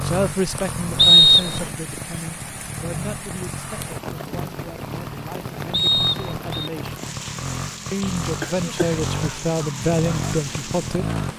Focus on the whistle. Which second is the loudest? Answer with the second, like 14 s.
1 s.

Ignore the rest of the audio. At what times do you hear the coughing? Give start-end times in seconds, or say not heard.
8.4-9.0.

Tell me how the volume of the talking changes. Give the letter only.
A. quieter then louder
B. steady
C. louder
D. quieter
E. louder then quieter
A.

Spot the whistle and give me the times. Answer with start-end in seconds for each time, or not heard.
0.9-1.7, 5.7-6.7.